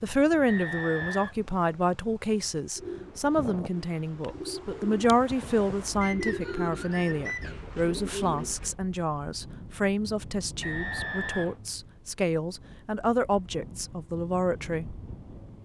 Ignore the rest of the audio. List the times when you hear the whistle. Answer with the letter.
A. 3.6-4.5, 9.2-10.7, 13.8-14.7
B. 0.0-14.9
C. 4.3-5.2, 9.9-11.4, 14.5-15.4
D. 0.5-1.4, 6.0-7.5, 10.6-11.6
D.